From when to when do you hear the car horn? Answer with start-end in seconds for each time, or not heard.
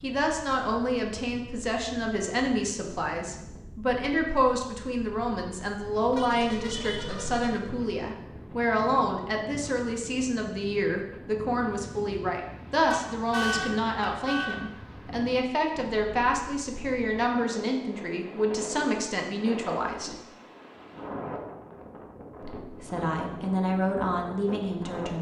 6.1-7.5, 12.8-14.6.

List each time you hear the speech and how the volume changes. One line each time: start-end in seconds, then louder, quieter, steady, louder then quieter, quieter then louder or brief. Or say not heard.
0.0-20.1 steady
22.4-25.1 brief.